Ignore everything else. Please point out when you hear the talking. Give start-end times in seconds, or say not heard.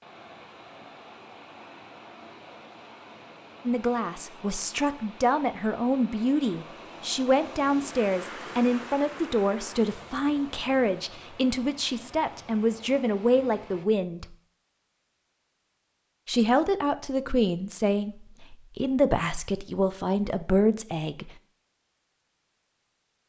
3.6-14.2, 16.2-21.3.